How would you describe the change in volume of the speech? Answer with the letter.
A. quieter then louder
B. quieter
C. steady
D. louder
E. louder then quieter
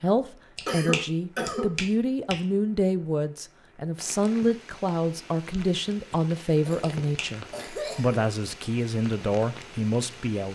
C.